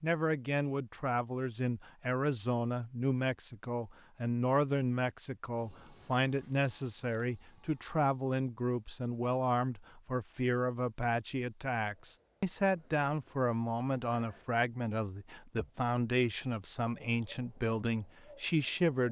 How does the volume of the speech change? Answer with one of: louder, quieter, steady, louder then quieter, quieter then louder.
steady.